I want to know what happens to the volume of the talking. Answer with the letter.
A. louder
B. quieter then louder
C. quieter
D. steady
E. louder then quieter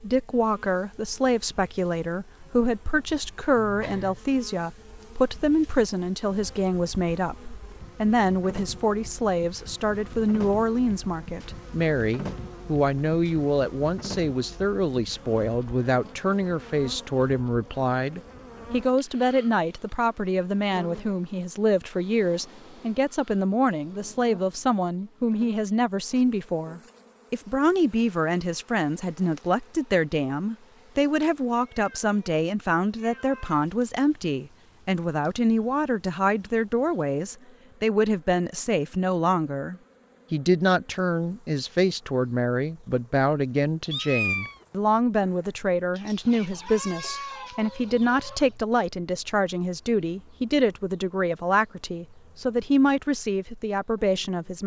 D.